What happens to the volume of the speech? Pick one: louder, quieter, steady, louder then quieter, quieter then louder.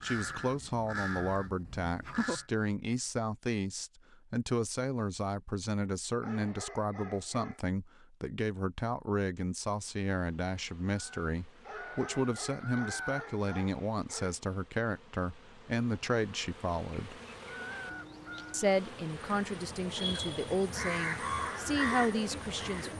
steady.